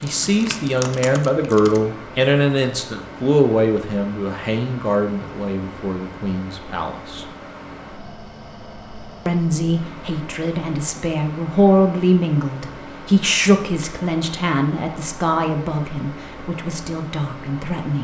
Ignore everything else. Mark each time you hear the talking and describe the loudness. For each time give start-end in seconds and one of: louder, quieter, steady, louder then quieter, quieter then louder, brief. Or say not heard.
0.0-7.2 quieter
9.2-17.9 louder then quieter.